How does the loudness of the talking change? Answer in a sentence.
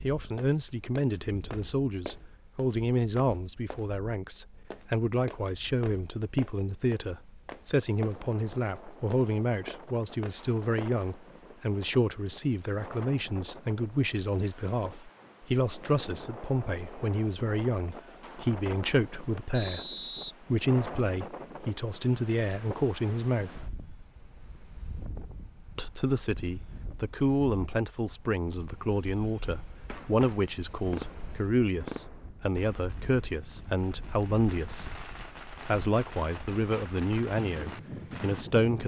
The volume of the talking stays about the same.